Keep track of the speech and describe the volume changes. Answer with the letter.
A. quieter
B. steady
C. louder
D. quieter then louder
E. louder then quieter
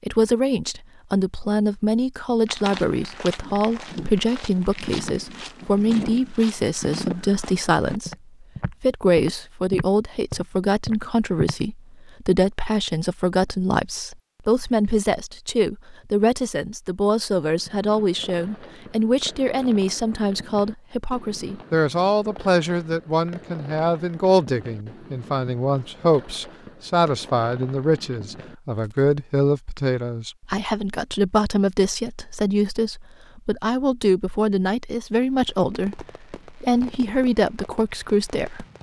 B.